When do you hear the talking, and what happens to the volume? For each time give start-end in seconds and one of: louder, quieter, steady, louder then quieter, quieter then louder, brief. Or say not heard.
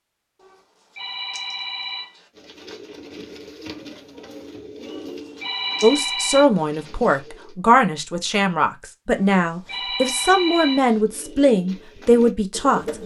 5.8-12.8 steady.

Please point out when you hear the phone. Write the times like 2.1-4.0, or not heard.
0.4-2.3, 4.8-6.5, 9.1-11.0.